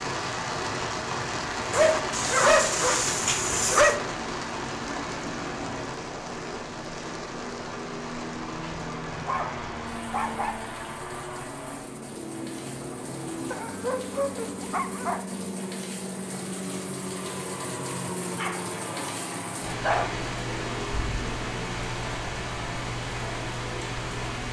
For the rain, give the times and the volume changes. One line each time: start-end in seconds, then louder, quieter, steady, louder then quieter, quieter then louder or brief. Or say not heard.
0.0-24.4 quieter then louder.